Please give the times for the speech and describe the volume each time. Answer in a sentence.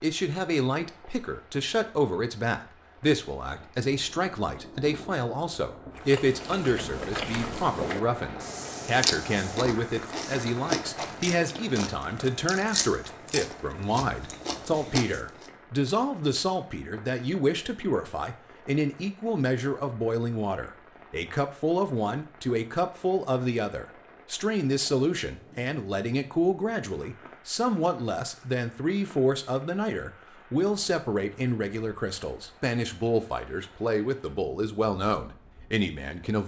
You can hear the speech from 0.0 to 36.4 s, at a steady volume.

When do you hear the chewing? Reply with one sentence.
You can hear the chewing from 6.0 to 15.5 s.